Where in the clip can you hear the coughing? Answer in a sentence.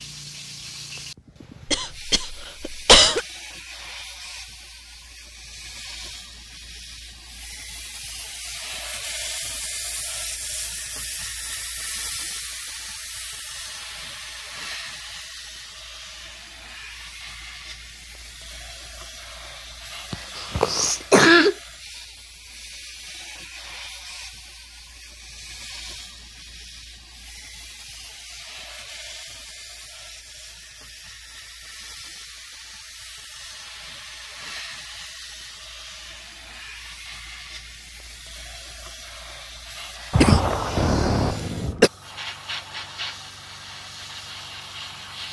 The coughing can be heard from 1.6 to 3.2 s, from 20.1 to 21.6 s and from 40.1 to 41.9 s.